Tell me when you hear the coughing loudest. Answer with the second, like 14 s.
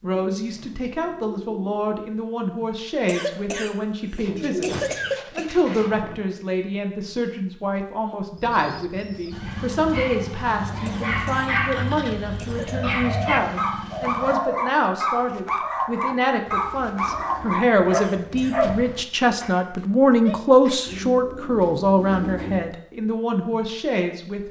5 s.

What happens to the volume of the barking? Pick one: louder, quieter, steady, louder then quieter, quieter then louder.
steady.